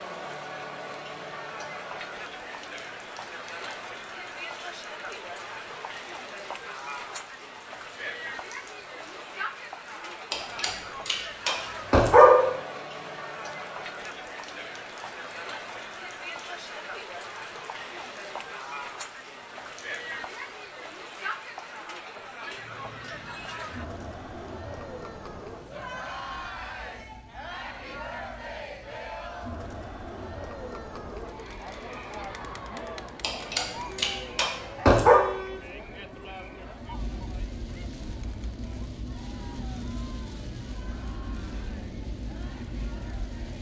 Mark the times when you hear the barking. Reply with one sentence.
The barking can be heard from 10.3 to 12.6 s and from 33.2 to 35.2 s.